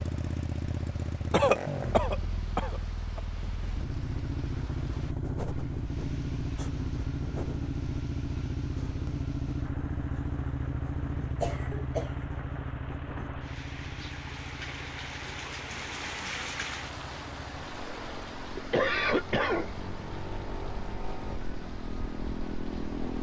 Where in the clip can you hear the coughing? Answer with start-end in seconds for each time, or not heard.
1.3-3.2, 11.4-12.3, 17.8-19.7.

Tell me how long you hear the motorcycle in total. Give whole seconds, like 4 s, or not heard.
23 s.